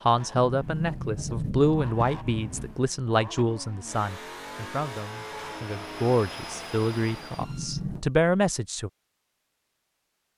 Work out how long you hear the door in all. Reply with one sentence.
The door can be heard for 3 seconds in total.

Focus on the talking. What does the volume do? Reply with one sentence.
The volume of the talking goes down, then up.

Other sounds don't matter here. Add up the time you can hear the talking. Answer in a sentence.
You can hear the talking for 9 seconds altogether.